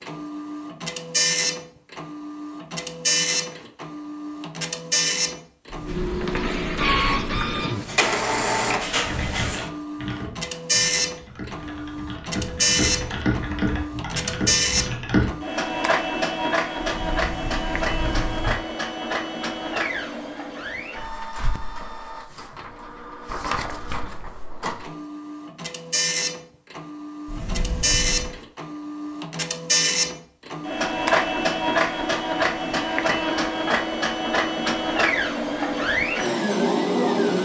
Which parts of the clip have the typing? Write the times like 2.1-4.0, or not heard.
9.1-15.3.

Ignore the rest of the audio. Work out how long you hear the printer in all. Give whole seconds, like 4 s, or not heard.
37 s.